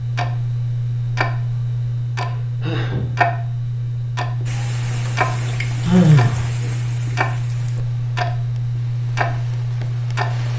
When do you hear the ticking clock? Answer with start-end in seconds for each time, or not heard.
0.0-10.5.